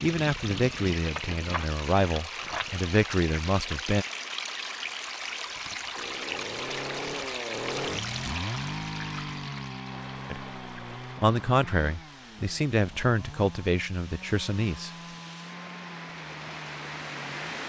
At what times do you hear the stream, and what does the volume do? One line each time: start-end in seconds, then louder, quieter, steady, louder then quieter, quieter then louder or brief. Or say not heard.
0.0-17.6 quieter then louder.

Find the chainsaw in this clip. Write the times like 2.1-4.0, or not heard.
5.9-17.6.